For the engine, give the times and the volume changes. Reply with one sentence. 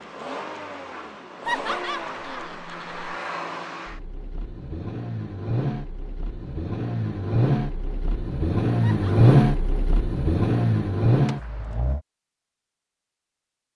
The engine can be heard from 0.0 to 12.0 s, getting louder.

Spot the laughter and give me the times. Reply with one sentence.
The laughter can be heard from 1.4 to 3.1 s and from 8.8 to 9.3 s.